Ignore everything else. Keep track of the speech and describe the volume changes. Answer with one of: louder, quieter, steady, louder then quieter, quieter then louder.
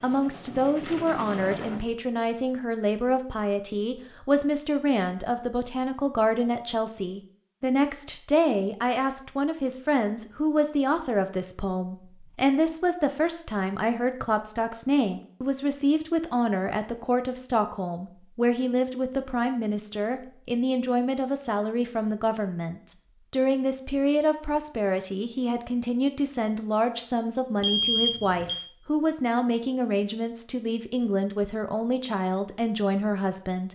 steady.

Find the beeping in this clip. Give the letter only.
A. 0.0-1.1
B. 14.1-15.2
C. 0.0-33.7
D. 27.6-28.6
D.